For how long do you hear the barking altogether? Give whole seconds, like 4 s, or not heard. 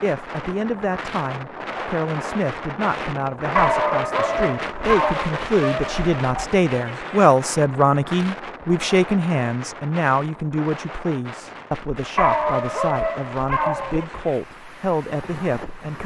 5 s.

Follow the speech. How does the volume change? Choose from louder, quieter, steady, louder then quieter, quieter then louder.
louder then quieter.